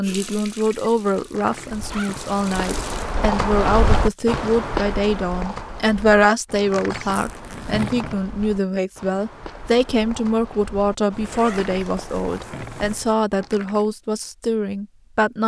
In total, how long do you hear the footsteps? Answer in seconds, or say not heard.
11 s.